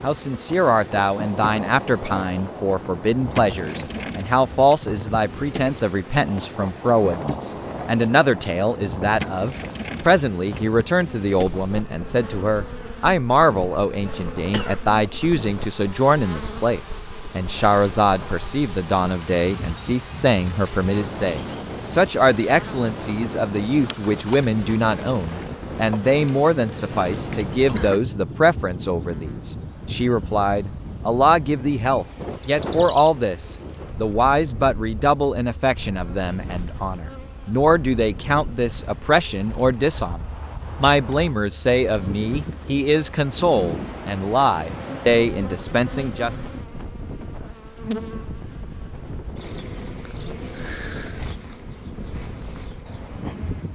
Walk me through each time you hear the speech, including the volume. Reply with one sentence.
The speech can be heard from 0.0 to 46.4 s, at a steady volume.